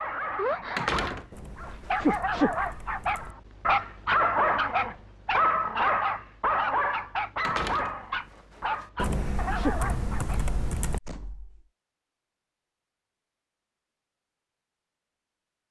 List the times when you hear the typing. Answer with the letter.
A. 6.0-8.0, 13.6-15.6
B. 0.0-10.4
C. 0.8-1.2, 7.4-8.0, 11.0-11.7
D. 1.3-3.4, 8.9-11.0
D.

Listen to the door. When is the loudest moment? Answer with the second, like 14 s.
1 s.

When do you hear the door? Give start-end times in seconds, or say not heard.
0.8-1.2, 7.4-8.0, 11.0-11.7.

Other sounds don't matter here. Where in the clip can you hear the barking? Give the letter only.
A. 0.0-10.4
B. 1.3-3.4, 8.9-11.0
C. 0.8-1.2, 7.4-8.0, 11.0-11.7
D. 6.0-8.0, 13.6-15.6
A.